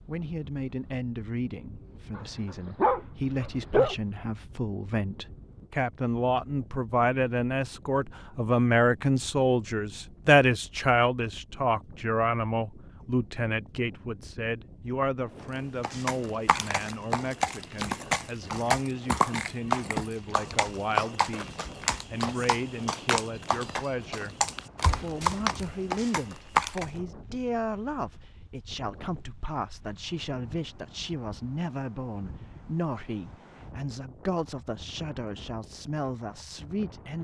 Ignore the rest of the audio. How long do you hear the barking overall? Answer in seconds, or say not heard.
2 s.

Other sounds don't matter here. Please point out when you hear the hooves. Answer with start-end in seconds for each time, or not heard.
15.8-26.9.